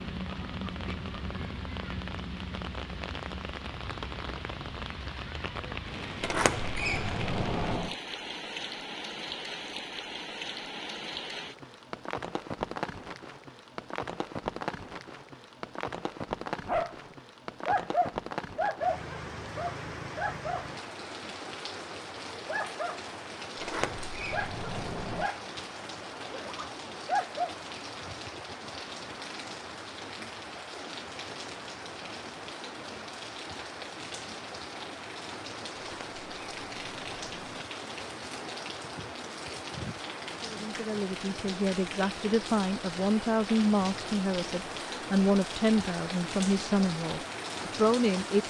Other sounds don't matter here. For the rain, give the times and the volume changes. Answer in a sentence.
The rain can be heard from 0.0 to 48.4 s, at a steady volume.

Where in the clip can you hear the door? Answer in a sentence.
You can hear the door from 6.2 to 8.0 s, from 23.6 to 25.3 s and from 35.8 to 37.6 s.